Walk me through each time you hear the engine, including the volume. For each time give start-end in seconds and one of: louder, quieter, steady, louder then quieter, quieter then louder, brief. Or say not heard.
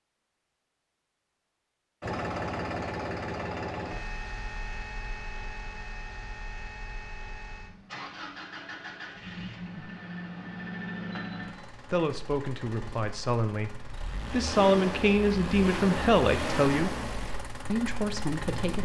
2.0-18.8 quieter then louder.